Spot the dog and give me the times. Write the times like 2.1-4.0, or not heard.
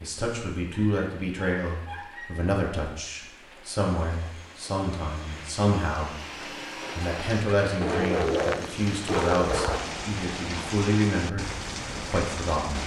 0.7-2.5, 7.8-9.8.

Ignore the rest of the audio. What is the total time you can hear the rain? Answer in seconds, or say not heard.
13 s.